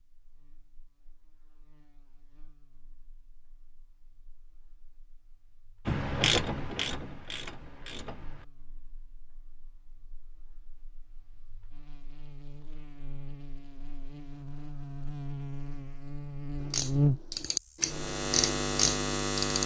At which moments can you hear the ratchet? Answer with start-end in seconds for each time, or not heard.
5.8-8.4, 16.6-19.6.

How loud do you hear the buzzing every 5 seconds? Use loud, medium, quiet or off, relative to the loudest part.
quiet, quiet, quiet, loud.